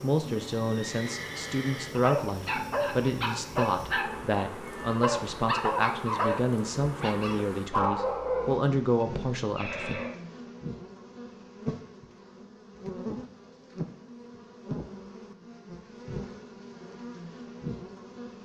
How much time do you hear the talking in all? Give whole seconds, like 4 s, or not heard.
10 s.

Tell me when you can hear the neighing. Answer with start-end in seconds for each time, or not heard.
0.6-1.9, 9.6-10.2.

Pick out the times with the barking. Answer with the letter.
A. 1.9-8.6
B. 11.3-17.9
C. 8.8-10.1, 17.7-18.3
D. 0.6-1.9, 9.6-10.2
A.